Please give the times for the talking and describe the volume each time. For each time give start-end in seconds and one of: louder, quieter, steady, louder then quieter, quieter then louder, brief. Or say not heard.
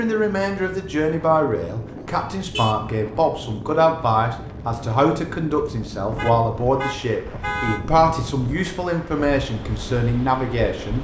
0.0-10.9 steady.